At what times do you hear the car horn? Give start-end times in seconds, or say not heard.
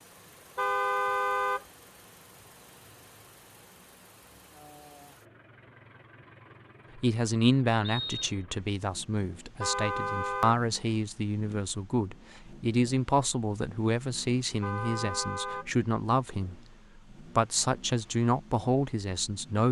0.6-1.6, 9.6-10.6, 14.6-15.7.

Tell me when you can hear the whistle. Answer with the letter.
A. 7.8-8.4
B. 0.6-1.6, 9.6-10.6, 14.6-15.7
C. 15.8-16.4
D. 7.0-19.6
A.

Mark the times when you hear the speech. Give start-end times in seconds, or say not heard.
7.0-19.6.